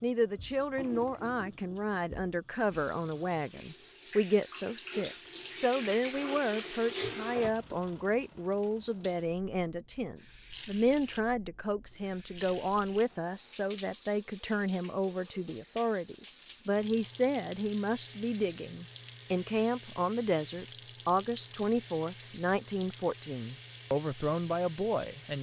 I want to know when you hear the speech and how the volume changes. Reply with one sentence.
You can hear the speech from 0.0 to 25.3 s, at a steady volume.